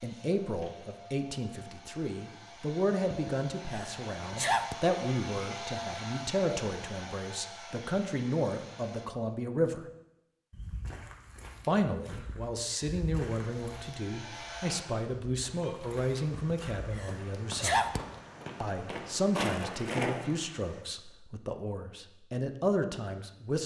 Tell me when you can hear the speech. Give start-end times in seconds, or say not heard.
0.0-9.8, 11.7-17.9, 18.6-23.6.